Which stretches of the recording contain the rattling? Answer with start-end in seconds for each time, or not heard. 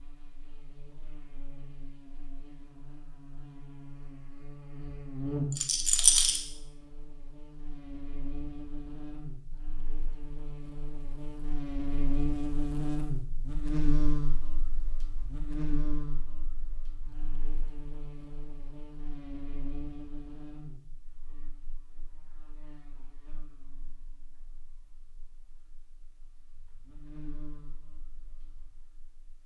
5.5-6.4.